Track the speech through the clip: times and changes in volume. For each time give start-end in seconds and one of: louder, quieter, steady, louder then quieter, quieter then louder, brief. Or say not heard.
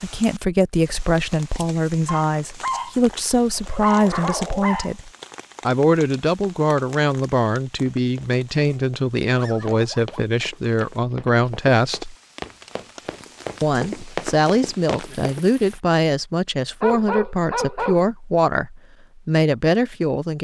0.0-12.2 steady
13.6-20.3 steady.